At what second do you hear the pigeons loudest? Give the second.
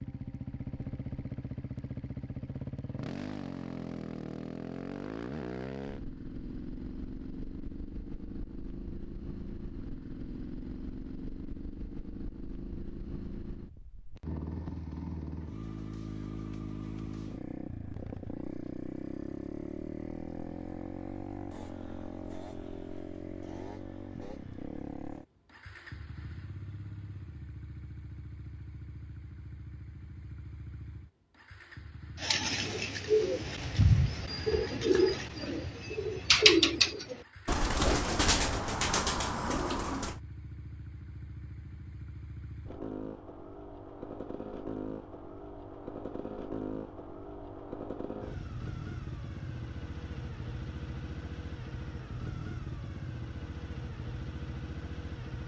36 s.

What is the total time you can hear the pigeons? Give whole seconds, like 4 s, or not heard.
8 s.